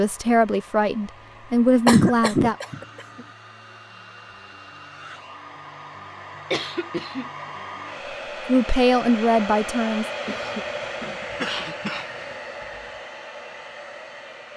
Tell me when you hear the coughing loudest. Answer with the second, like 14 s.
2 s.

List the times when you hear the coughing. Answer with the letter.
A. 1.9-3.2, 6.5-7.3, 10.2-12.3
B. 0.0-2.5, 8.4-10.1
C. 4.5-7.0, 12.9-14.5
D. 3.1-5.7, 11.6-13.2
A.